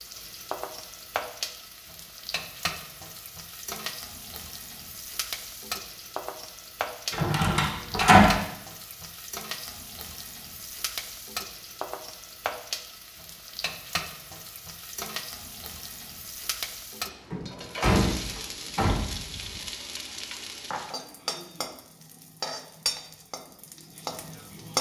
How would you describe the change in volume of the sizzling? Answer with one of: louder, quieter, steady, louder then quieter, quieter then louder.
steady.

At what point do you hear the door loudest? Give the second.
8 s.